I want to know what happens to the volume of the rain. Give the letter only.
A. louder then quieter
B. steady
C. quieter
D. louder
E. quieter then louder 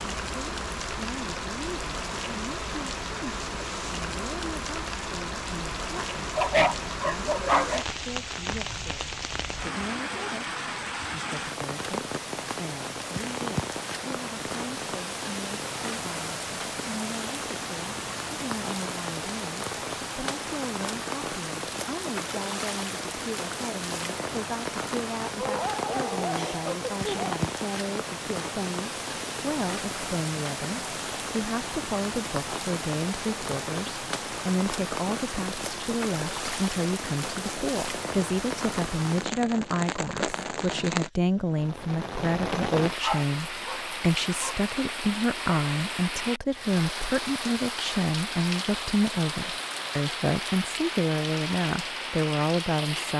B.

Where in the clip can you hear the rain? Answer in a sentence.
The rain can be heard from 0.0 to 53.1 s.